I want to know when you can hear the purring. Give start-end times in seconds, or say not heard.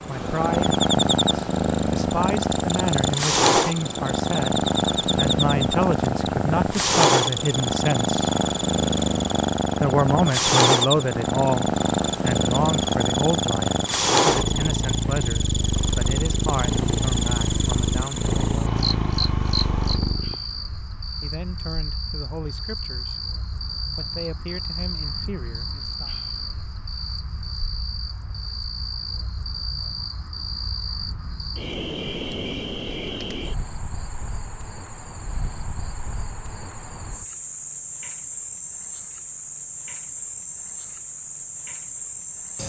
0.0-20.4.